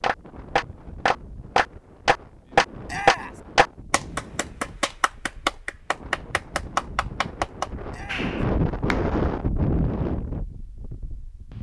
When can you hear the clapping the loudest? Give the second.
3 s.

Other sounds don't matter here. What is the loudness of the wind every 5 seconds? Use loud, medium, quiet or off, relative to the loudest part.
quiet, loud, medium.